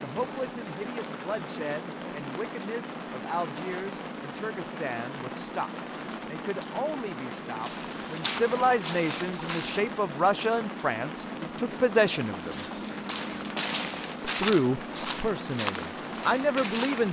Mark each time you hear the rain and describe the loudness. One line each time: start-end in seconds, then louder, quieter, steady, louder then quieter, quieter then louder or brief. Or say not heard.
0.0-17.0 steady.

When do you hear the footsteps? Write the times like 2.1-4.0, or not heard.
7.6-10.2, 12.1-17.0.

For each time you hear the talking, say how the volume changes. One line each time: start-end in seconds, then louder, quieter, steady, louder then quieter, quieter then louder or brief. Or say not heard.
0.0-12.7 louder
14.2-17.0 brief.